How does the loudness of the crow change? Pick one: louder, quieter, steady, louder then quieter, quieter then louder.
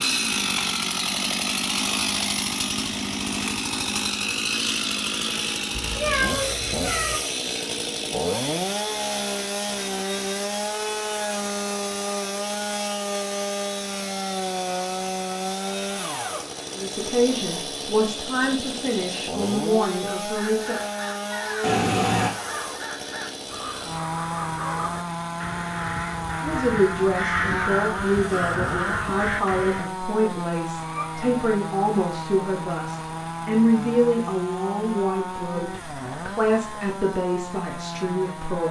louder.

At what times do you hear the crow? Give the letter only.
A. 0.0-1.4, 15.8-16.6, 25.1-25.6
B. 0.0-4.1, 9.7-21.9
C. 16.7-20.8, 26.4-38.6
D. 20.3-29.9
D.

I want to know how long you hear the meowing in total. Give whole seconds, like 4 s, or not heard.
3 s.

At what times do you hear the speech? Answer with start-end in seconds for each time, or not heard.
16.7-20.8, 26.4-38.6.